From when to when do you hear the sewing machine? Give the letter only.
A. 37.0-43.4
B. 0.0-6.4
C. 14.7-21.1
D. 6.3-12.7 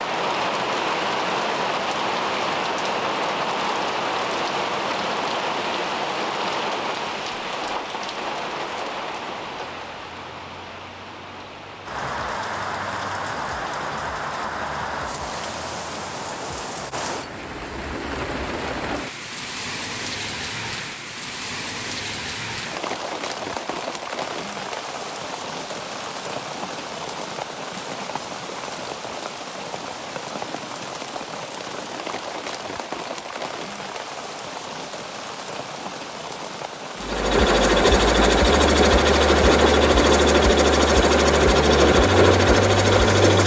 A.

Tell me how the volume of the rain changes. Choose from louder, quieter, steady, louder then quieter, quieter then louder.
quieter.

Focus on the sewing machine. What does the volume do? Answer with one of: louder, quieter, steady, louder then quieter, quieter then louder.
steady.